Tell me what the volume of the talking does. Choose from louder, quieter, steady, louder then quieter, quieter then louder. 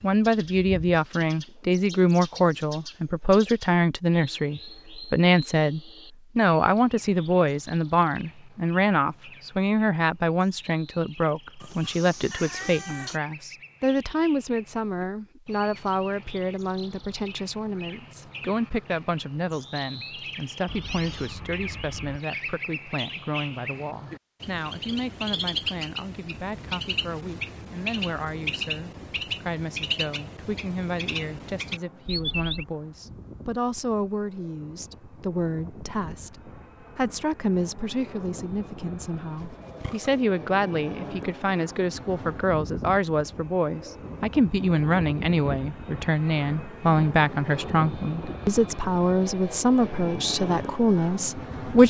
quieter then louder.